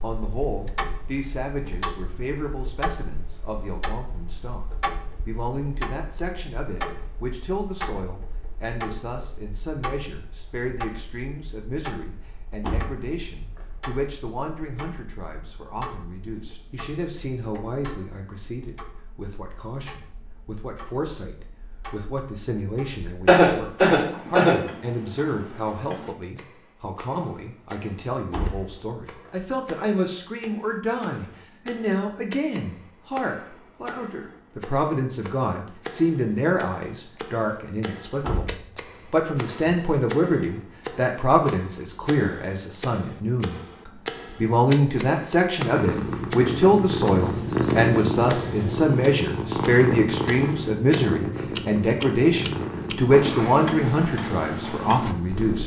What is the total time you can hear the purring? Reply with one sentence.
You can hear the purring for 10 seconds altogether.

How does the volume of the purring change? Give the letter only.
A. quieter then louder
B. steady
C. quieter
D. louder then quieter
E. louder
C.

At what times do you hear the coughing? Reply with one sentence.
You can hear the coughing from 23.2 to 24.6 s.